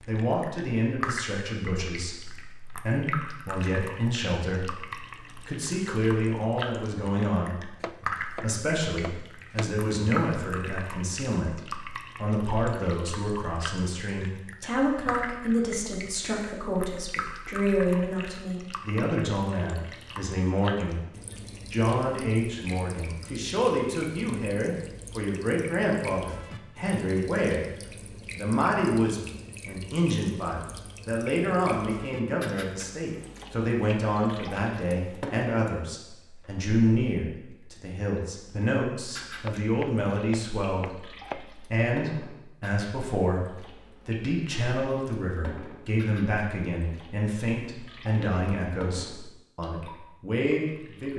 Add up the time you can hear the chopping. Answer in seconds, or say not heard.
4 s.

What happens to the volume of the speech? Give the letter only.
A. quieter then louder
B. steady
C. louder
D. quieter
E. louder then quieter
B.